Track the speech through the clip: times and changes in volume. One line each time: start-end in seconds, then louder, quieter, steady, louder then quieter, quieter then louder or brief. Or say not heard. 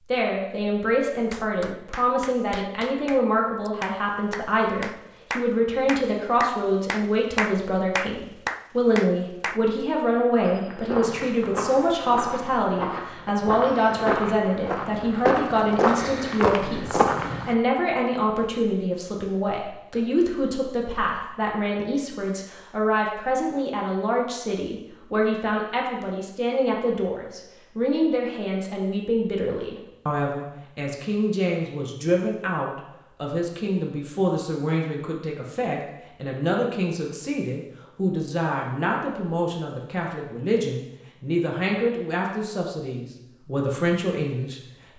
0.1-44.9 steady.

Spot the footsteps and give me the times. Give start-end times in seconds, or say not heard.
10.4-17.6.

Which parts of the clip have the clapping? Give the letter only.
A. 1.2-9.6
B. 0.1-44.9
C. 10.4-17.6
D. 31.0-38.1
A.